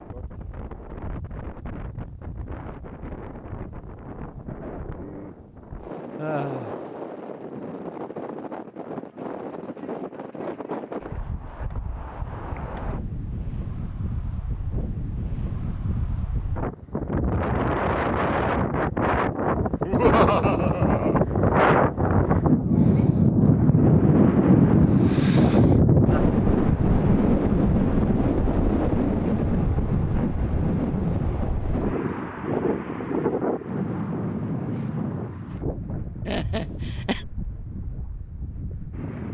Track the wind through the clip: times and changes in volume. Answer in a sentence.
The wind can be heard from 0.0 to 39.2 s, getting louder then quieter.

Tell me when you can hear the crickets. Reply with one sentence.
You can't hear the crickets here.